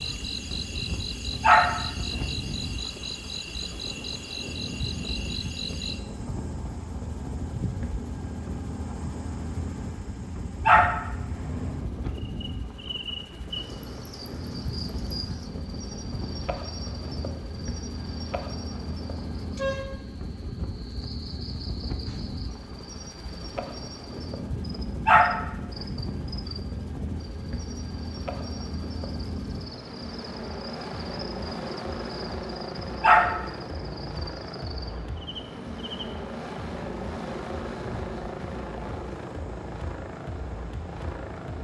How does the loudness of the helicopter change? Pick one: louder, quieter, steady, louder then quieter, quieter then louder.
steady.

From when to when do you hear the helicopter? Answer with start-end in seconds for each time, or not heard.
0.0-41.5.